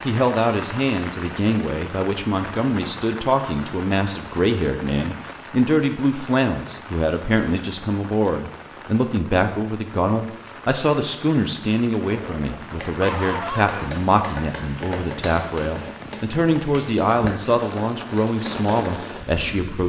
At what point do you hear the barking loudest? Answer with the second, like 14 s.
13 s.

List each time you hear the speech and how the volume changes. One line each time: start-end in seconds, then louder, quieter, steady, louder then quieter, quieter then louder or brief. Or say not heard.
0.1-19.8 steady.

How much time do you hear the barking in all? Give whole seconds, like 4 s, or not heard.
2 s.